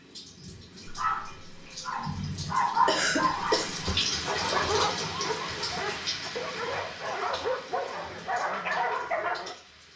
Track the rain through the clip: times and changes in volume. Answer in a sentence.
You can hear the rain from 0.0 to 9.9 s, getting louder then quieter.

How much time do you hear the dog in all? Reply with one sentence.
You can hear the dog for 9 seconds altogether.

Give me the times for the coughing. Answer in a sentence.
You can hear the coughing from 2.4 to 3.7 s.